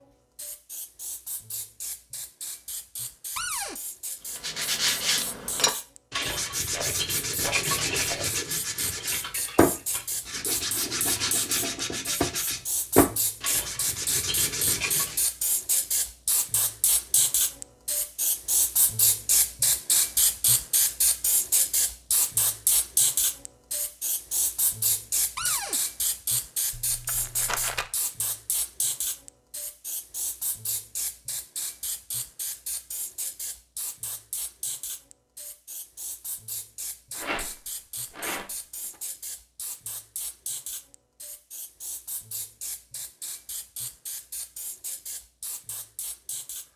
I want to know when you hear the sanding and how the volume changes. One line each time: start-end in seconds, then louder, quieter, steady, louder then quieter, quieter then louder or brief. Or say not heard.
4.3-15.2 steady.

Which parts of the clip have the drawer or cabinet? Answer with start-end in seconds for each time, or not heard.
3.4-3.8, 25.4-25.8.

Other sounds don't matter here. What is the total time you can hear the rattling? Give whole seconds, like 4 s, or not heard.
5 s.